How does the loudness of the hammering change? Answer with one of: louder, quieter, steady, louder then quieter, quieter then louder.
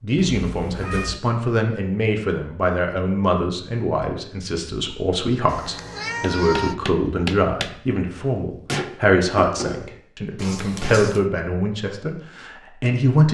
quieter.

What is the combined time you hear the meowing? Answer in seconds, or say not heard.
3 s.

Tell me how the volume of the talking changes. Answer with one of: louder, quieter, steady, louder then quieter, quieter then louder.
steady.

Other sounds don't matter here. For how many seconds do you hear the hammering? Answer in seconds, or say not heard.
5 s.